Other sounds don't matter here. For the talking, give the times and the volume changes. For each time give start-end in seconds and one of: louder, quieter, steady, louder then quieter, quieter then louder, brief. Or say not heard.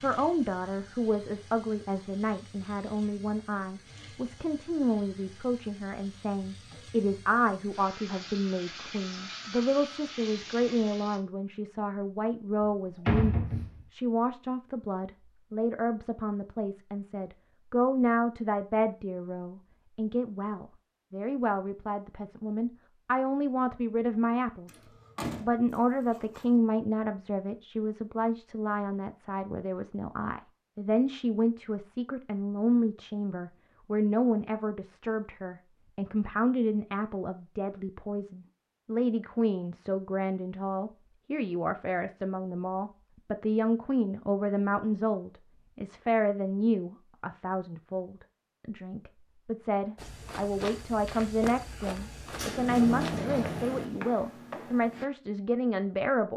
0.0-24.7 steady
25.4-56.3 steady.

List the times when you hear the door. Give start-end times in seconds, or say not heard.
12.6-13.8, 24.6-26.4, 52.4-53.9.